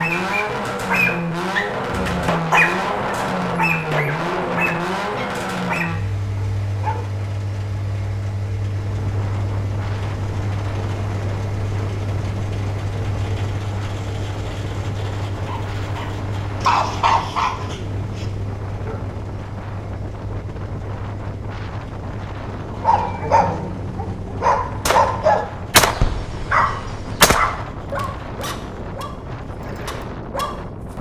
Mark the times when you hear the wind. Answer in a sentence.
You can hear the wind from 8.7 to 30.9 s.